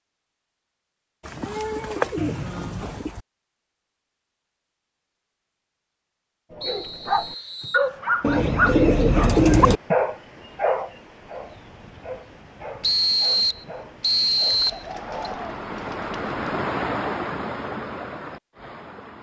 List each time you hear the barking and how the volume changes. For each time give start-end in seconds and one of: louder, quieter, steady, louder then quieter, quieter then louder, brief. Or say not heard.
6.5-15.2 quieter.